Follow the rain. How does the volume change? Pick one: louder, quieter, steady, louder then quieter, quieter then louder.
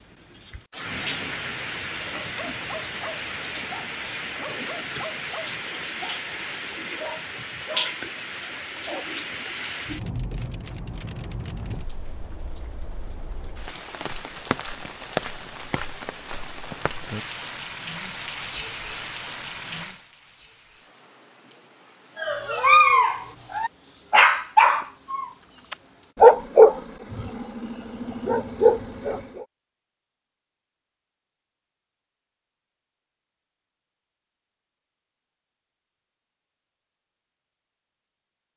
quieter.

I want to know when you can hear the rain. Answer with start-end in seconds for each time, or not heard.
0.0-26.1.